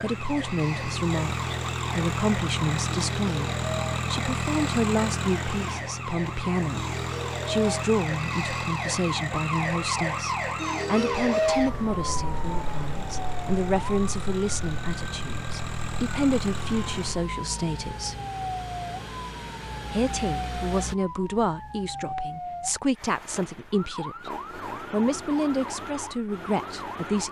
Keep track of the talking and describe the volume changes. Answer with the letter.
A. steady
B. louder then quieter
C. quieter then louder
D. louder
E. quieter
A.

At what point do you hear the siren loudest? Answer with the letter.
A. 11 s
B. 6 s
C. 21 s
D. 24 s
A.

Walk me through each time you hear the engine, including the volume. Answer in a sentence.
You can hear the engine from 0.0 to 20.9 s, getting quieter.